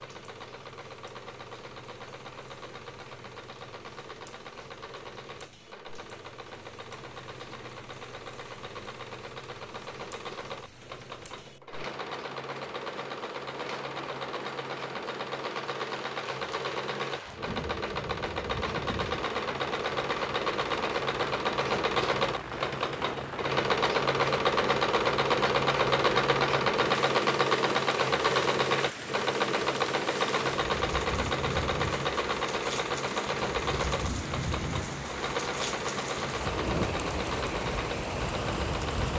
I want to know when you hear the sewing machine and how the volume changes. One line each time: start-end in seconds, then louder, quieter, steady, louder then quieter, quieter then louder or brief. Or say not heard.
0.0-39.1 louder then quieter.